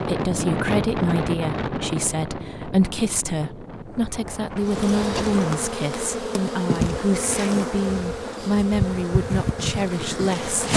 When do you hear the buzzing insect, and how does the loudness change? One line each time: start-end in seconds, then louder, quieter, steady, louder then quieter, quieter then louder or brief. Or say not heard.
4.6-10.7 steady.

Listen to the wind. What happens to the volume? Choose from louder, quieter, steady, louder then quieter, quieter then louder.
quieter.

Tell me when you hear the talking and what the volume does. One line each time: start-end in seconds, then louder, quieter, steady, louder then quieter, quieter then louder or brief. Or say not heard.
0.0-10.7 steady.